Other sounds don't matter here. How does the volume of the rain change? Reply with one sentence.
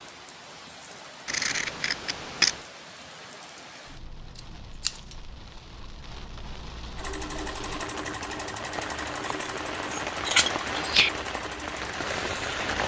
The volume of the rain goes up.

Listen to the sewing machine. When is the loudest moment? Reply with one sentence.
The loudest moment of the sewing machine is at 8 seconds.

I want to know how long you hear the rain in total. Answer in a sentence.
The rain can be heard for 13 seconds in total.